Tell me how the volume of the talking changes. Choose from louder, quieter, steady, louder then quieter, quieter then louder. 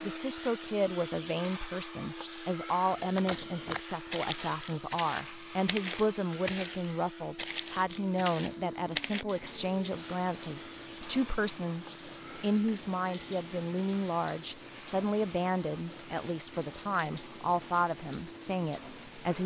steady.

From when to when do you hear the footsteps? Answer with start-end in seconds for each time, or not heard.
3.0-9.2.